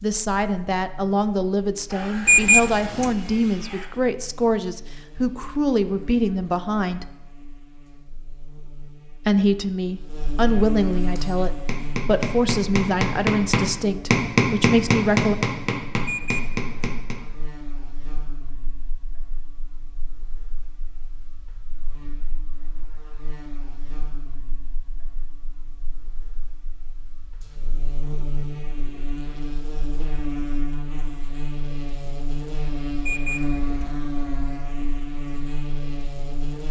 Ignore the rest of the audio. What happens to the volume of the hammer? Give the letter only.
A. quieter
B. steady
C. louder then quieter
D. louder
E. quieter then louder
C.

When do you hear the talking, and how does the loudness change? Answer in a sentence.
You can hear the talking from 0.0 to 7.0 s, at a steady volume; and from 9.2 to 15.3 s, at a steady volume.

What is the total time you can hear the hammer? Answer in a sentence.
You can hear the hammer for 6 seconds altogether.